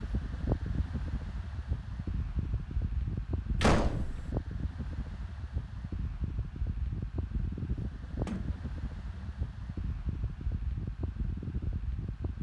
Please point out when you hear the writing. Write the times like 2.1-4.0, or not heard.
not heard.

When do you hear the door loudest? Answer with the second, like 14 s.
4 s.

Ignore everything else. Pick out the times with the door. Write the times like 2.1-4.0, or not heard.
3.6-4.3, 8.2-9.3.